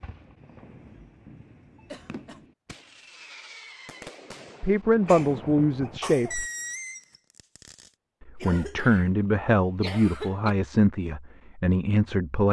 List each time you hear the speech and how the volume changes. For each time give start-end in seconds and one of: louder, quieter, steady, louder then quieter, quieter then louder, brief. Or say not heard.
4.6-6.5 brief
8.2-12.4 steady.